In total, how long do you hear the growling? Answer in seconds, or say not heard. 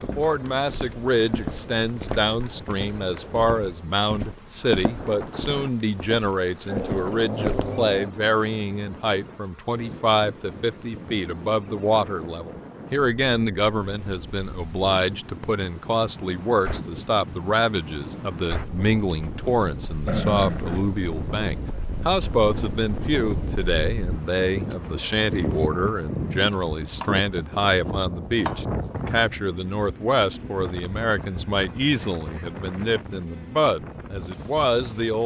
2 s.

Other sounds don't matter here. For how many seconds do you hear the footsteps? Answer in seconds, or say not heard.
8 s.